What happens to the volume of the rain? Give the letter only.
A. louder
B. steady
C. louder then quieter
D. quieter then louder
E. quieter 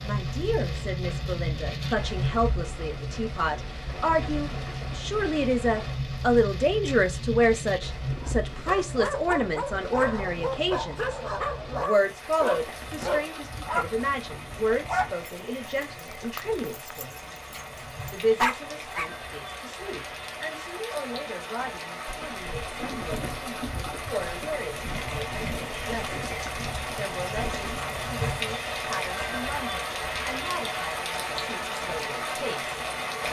D.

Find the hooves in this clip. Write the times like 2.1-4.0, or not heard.
22.1-27.9.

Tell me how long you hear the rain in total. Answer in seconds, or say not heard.
33 s.